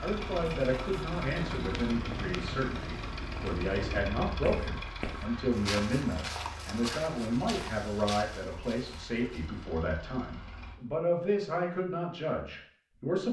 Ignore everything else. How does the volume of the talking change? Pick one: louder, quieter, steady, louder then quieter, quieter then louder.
steady.